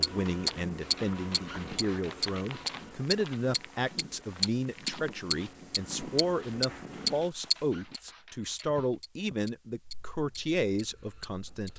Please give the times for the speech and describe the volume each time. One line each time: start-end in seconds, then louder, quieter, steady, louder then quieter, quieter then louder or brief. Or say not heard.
0.0-11.7 steady.